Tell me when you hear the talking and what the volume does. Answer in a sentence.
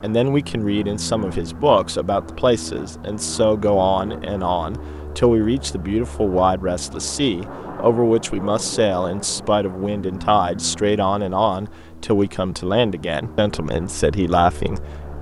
You can hear the talking from 0.0 to 15.1 s, at a steady volume.